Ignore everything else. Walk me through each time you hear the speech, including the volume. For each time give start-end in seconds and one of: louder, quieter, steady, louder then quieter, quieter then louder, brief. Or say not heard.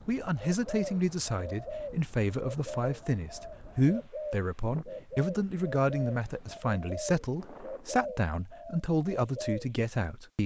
0.1-10.4 steady.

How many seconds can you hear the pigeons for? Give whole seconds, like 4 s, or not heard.
9 s.